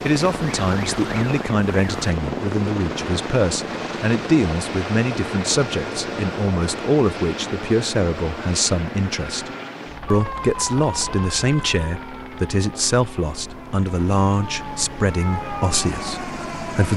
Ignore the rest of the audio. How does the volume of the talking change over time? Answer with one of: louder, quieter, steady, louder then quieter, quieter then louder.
steady.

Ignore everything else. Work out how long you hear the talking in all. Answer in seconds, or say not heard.
16 s.